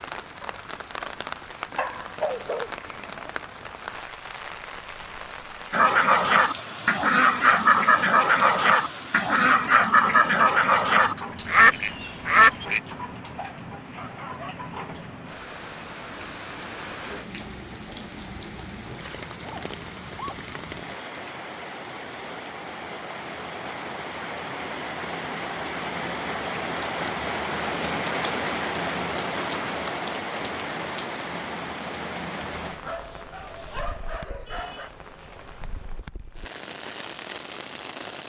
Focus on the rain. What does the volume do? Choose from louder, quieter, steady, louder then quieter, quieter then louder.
louder then quieter.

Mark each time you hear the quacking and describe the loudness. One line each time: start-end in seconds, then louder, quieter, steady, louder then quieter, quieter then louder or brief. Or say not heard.
5.7-12.8 steady.